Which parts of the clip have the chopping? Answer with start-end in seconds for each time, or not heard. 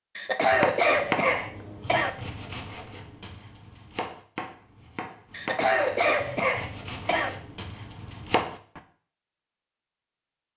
0.5-8.8.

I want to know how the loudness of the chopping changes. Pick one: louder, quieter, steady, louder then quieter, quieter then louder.
quieter then louder.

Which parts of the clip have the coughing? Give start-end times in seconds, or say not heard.
0.1-2.1, 5.3-7.3.